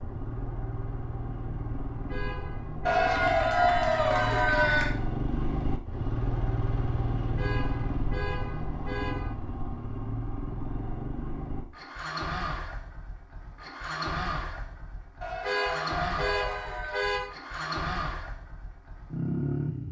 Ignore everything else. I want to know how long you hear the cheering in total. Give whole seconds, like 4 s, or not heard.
4 s.